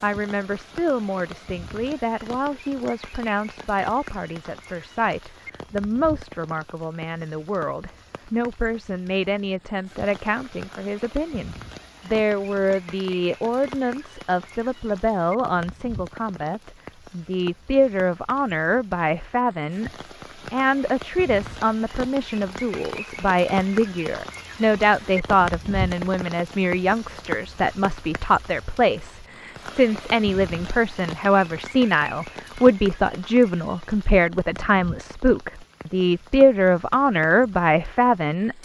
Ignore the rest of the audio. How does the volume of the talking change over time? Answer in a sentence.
The loudness of the talking goes up.